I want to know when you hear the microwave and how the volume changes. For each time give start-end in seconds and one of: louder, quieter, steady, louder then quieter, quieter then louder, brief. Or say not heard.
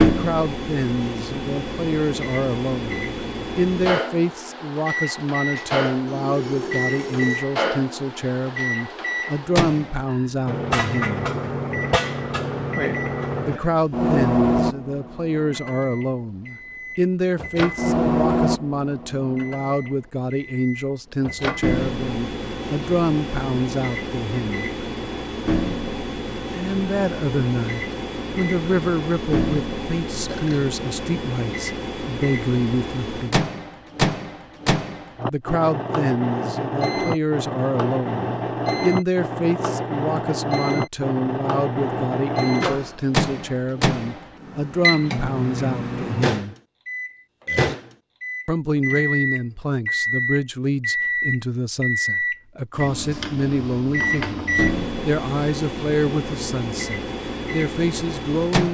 0.0-58.6 steady.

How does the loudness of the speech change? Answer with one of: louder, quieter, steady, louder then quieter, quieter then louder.
steady.